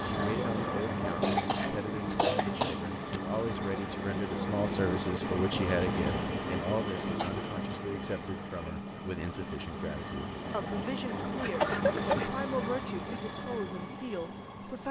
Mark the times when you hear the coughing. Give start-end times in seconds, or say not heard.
1.2-3.2, 7.0-7.5, 11.4-12.3.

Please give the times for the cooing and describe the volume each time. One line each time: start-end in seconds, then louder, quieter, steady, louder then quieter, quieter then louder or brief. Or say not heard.
not heard.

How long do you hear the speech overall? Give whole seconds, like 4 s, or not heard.
15 s.